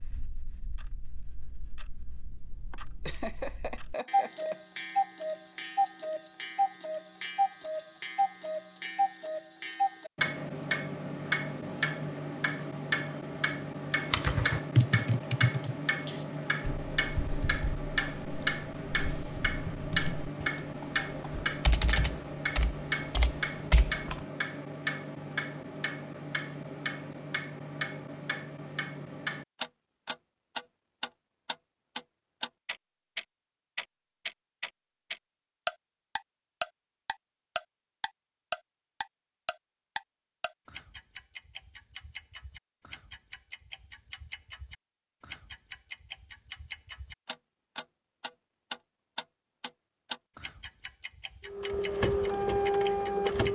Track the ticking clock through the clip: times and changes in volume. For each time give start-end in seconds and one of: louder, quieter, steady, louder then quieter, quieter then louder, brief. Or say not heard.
0.0-53.5 quieter.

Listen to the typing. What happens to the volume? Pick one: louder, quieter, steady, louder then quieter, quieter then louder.
quieter then louder.